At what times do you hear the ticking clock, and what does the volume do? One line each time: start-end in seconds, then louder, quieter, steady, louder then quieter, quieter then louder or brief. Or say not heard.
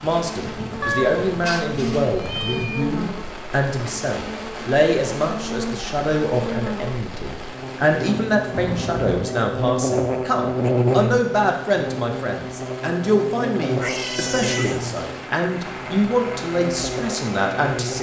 not heard.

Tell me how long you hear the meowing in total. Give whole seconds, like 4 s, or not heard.
4 s.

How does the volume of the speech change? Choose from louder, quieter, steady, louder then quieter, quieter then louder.
steady.